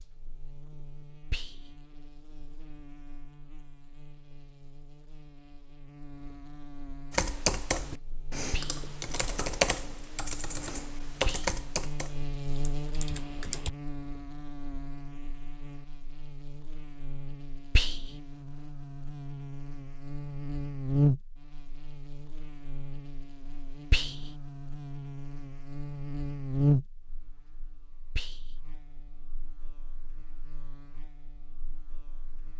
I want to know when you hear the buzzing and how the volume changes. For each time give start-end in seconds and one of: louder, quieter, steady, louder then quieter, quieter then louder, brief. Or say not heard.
0.0-32.5 louder.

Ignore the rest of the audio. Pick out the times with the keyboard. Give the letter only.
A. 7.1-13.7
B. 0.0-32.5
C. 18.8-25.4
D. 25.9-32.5
A.